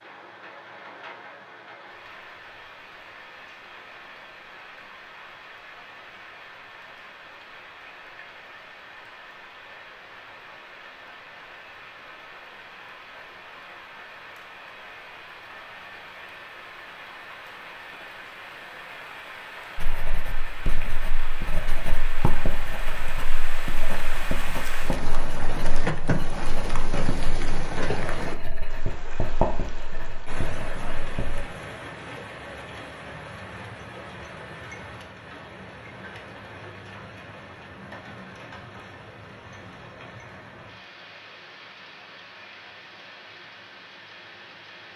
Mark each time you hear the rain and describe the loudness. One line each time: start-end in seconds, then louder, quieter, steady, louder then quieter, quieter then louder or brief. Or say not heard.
0.0-44.9 louder then quieter.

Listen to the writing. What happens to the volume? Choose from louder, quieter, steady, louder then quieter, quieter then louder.
louder.